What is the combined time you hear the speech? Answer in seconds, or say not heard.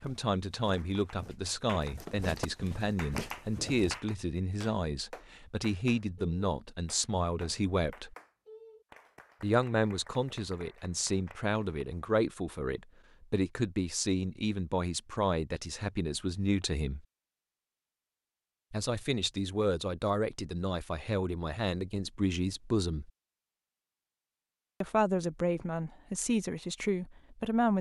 23 s.